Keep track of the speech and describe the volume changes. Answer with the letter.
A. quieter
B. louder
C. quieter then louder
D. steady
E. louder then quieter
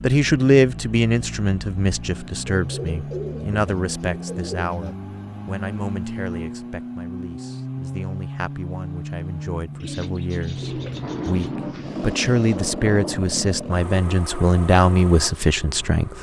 C.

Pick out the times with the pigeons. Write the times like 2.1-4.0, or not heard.
2.5-5.0, 9.8-12.6.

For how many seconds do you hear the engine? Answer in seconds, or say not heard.
16 s.